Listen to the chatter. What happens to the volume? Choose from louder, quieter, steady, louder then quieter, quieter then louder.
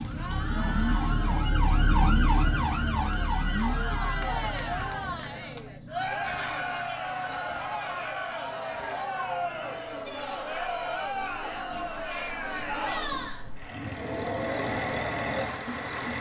louder.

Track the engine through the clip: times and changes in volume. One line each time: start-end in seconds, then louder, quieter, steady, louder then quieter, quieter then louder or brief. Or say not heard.
0.0-16.1 quieter then louder.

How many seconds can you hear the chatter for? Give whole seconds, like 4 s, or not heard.
16 s.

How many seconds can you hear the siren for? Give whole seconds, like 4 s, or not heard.
5 s.